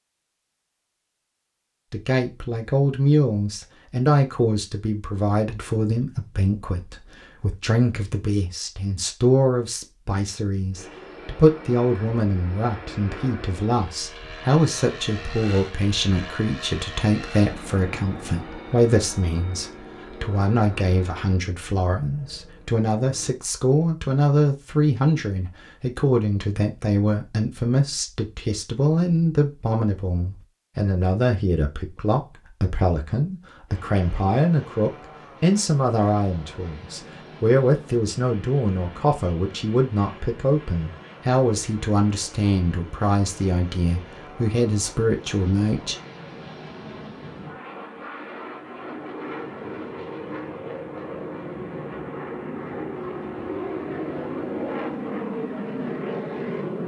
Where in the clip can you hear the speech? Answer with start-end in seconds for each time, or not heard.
1.9-46.0.